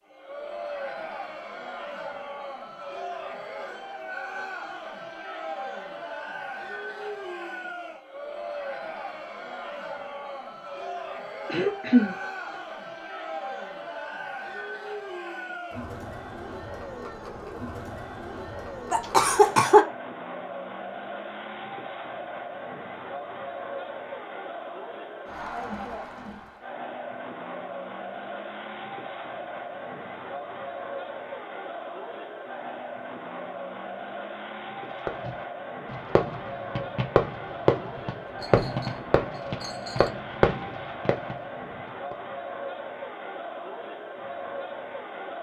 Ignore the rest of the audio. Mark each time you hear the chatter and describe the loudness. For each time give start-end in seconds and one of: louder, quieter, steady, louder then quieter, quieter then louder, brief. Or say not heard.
0.0-45.3 steady.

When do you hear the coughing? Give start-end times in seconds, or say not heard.
11.4-12.2, 18.9-19.9, 38.0-38.8.